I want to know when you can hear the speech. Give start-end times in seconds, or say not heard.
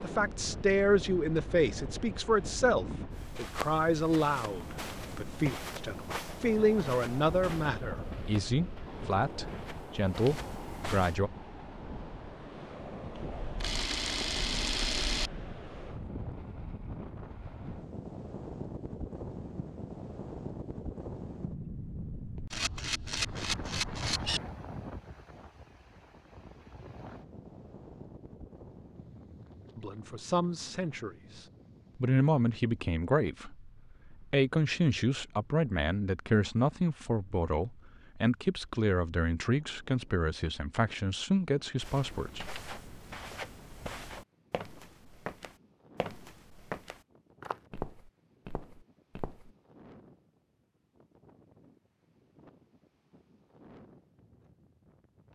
0.0-11.3, 29.8-42.5.